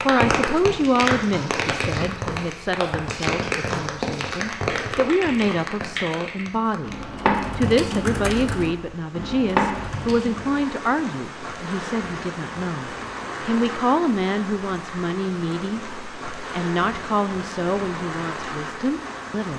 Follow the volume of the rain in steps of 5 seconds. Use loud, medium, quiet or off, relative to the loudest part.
loud, medium, medium, medium.